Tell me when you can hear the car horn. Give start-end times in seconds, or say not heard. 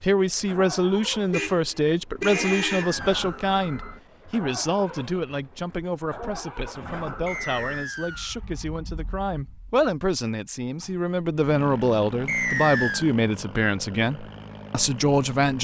1.3-3.0.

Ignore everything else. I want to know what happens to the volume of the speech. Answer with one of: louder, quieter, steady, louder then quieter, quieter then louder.
quieter then louder.